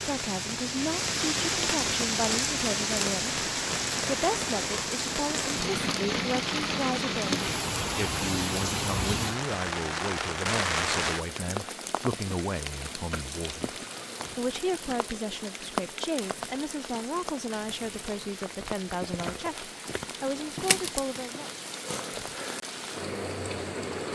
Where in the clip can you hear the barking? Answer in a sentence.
You can't hear the barking here.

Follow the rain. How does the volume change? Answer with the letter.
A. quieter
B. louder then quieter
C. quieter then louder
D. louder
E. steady
A.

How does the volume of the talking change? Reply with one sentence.
The loudness of the talking stays about the same.